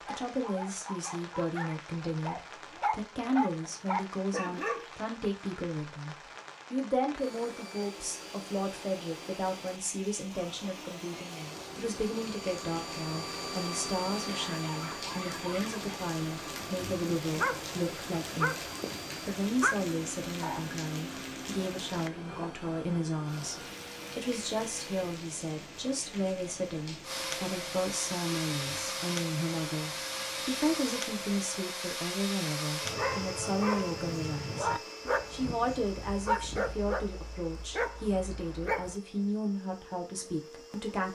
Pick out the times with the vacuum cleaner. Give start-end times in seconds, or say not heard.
7.2-25.2, 27.0-41.1.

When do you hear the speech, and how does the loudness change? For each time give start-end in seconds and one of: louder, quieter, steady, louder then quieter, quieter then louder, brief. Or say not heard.
0.0-41.1 steady.